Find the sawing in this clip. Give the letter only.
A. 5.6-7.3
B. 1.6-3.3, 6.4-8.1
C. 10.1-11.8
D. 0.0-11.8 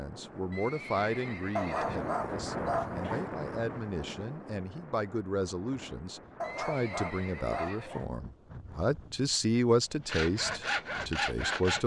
C.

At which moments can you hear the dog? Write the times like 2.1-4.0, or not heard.
1.6-3.3, 6.4-8.1.